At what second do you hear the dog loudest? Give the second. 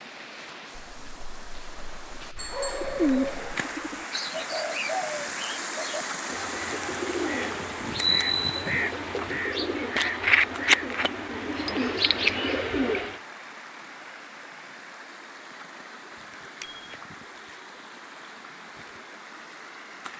3 s.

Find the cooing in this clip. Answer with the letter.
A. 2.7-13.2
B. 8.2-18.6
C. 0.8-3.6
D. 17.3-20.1
A.